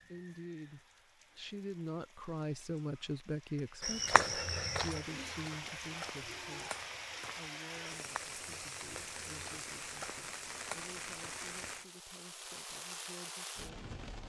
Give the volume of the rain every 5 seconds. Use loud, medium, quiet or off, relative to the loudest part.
quiet, loud, loud.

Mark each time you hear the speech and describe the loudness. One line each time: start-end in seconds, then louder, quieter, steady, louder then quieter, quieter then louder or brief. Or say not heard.
0.1-13.9 quieter.